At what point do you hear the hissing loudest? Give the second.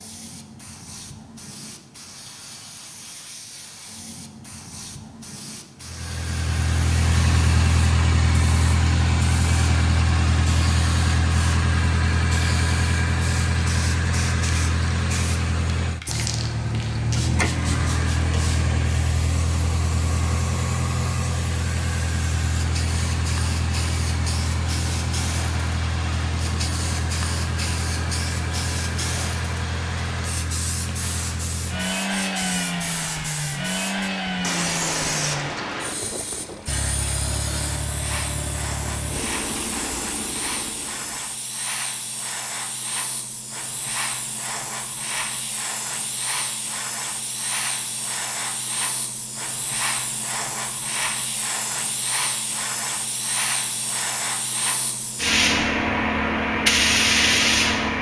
57 s.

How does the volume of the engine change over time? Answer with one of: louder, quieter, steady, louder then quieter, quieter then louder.
quieter.